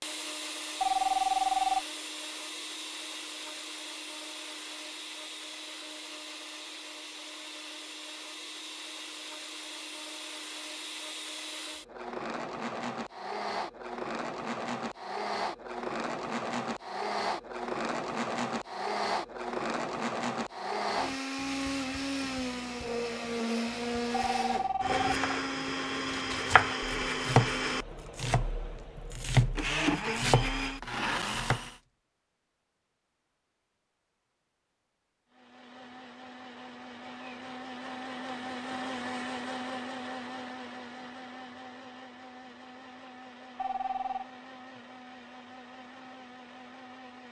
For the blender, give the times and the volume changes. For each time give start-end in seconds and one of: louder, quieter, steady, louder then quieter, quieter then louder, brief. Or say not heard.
0.0-31.8 louder
35.3-47.2 louder then quieter.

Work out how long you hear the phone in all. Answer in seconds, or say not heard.
3 s.